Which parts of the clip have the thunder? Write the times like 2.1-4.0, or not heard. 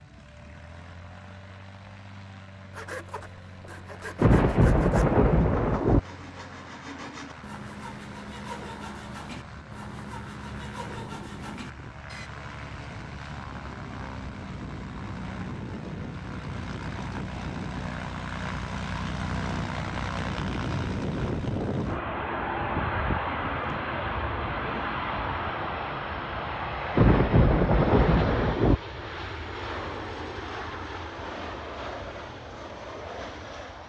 4.2-6.0, 26.9-28.8.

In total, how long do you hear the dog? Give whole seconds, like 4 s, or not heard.
not heard.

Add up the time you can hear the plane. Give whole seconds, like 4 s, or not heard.
34 s.